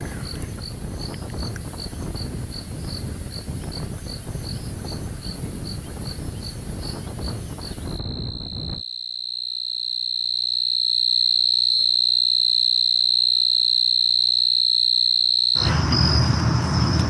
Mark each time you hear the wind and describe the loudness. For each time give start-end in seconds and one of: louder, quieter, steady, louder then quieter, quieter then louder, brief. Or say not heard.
0.0-8.8 steady.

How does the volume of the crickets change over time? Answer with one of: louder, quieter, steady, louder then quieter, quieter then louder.
louder.